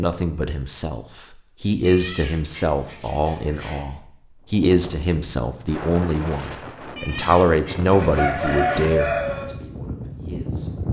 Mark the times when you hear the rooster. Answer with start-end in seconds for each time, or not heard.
7.9-9.4.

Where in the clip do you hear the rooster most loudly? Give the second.
9 s.